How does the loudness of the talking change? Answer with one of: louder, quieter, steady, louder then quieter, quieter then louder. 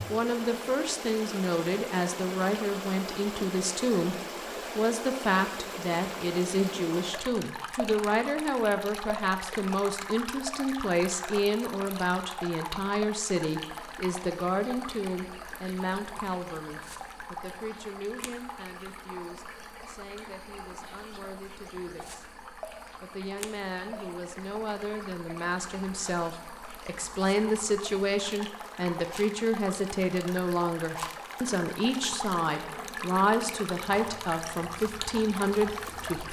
quieter then louder.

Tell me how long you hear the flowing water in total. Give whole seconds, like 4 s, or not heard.
36 s.